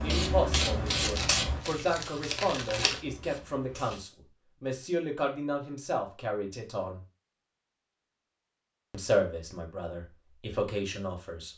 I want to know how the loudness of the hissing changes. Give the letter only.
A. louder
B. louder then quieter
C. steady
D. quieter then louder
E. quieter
E.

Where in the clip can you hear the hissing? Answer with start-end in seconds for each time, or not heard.
0.0-4.0.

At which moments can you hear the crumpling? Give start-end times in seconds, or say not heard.
0.7-3.0.